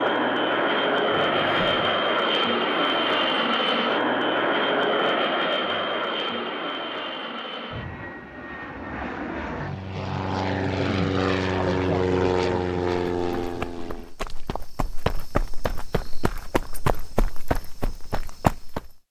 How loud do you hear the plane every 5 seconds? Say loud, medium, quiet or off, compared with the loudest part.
loud, medium, loud, off.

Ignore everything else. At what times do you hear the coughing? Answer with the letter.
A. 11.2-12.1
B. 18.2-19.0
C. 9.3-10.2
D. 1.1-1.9
D.